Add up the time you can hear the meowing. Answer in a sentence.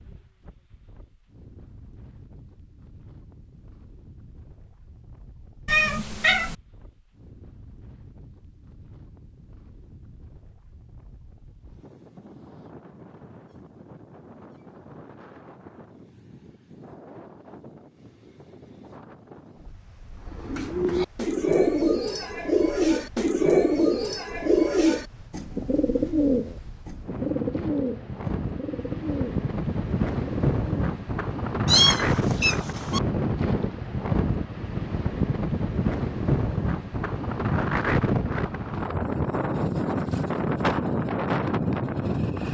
You can hear the meowing for 2 seconds altogether.